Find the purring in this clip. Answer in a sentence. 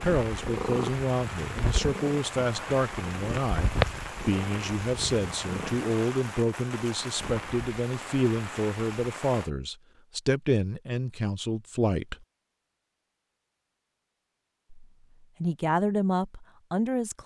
The purring can be heard from 0.2 to 5.9 s.